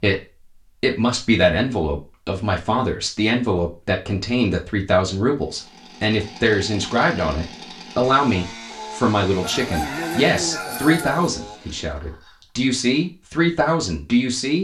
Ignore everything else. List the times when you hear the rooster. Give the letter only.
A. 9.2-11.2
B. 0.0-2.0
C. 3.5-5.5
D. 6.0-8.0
A.